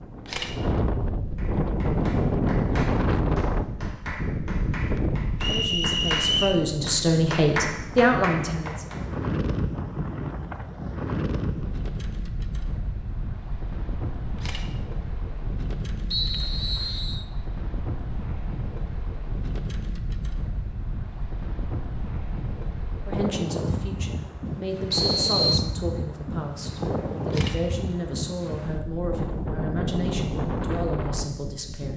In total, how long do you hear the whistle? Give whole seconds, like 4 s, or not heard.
3 s.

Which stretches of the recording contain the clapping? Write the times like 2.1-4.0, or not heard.
1.4-9.0.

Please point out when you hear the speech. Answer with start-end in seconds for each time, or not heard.
5.5-9.0, 23.1-31.9.